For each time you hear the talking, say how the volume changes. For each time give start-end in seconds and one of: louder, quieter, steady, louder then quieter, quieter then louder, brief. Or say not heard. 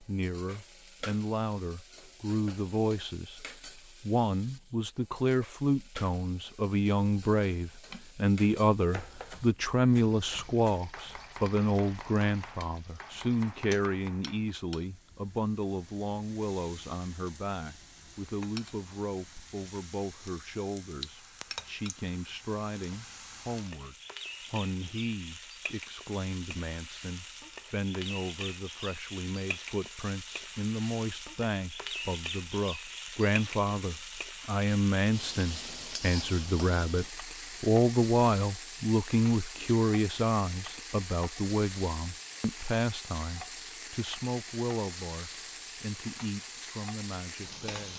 0.0-47.9 quieter then louder.